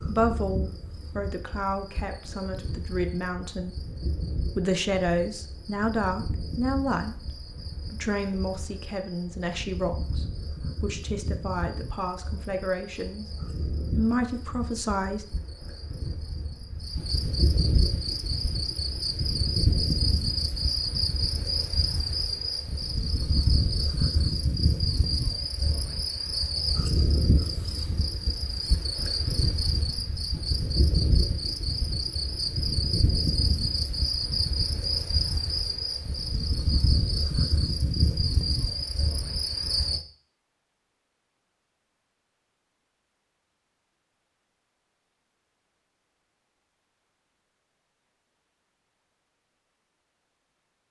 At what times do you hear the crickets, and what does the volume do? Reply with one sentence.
You can hear the crickets from 0.0 to 40.0 s, getting louder.